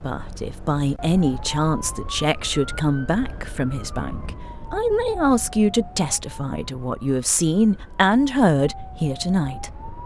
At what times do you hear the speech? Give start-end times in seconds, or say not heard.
0.0-9.8.